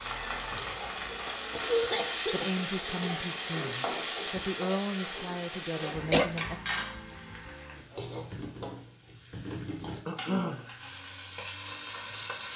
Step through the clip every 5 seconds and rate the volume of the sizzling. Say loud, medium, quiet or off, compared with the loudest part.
loud, medium, medium.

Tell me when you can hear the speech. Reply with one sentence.
You can hear the speech from 2.2 to 6.5 s.